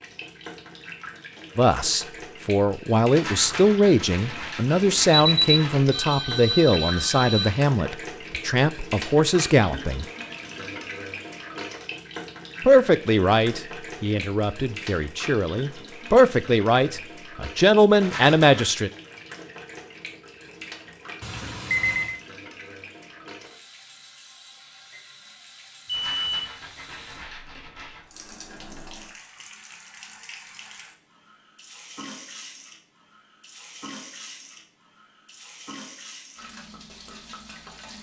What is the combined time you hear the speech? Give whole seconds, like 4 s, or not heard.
15 s.